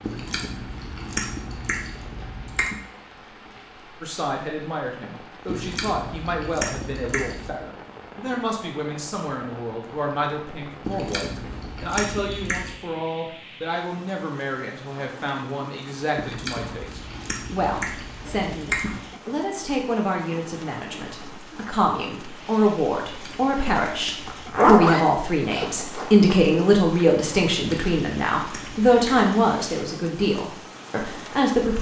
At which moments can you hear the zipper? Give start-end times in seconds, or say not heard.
0.7-1.2, 24.2-26.1.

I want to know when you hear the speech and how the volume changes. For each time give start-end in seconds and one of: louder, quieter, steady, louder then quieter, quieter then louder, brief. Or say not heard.
4.0-31.7 louder.